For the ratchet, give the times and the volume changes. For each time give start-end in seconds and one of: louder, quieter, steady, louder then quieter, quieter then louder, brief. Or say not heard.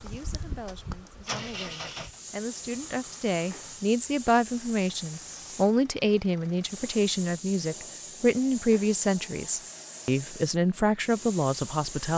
not heard.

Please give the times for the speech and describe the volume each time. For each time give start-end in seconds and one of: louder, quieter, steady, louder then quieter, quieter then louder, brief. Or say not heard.
0.0-12.1 louder.